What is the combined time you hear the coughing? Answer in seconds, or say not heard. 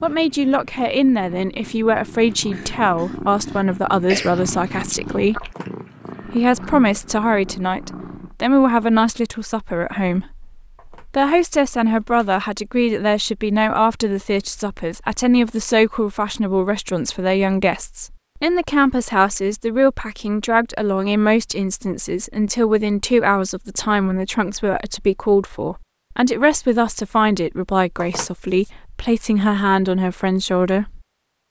2 s.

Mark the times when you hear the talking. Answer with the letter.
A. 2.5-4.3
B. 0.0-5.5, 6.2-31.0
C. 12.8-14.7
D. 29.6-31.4
B.